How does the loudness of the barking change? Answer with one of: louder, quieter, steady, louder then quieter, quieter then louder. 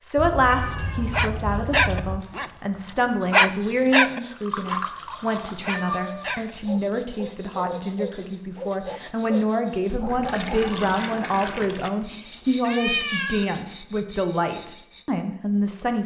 quieter.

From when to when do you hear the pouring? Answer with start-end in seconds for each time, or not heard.
4.2-5.7, 9.8-11.9.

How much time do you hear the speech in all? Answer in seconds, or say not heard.
16 s.